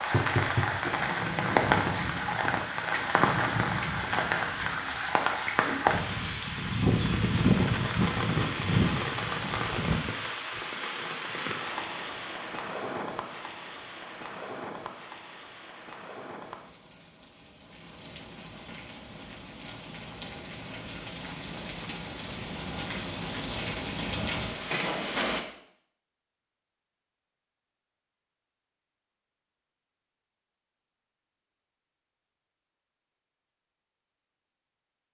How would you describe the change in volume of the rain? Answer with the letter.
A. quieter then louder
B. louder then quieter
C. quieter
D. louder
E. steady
A.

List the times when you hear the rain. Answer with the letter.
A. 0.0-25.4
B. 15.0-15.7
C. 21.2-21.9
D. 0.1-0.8
A.